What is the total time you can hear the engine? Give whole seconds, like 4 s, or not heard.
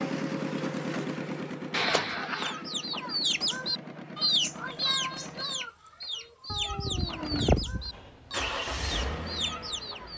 9 s.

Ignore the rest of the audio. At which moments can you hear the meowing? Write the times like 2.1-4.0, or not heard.
1.7-2.6, 6.5-8.0.